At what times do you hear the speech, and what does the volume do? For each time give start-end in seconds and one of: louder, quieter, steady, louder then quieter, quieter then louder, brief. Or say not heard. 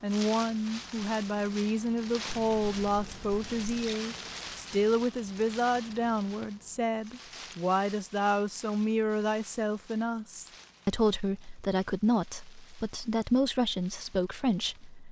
0.0-15.0 steady.